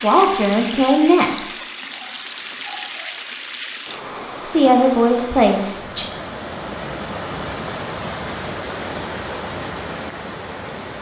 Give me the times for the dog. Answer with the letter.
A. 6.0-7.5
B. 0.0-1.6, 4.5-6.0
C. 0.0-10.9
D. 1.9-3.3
D.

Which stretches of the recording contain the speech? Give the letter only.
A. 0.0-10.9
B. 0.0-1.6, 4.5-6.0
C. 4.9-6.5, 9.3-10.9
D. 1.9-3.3
B.